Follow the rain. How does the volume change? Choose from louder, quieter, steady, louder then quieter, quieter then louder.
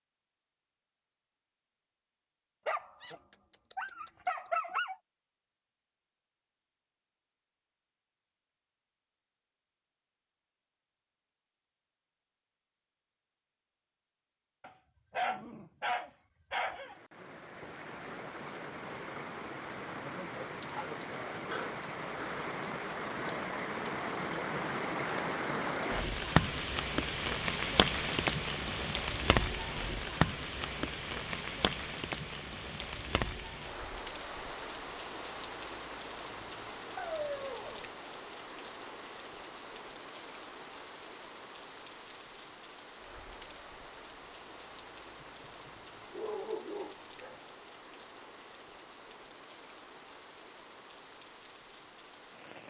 louder then quieter.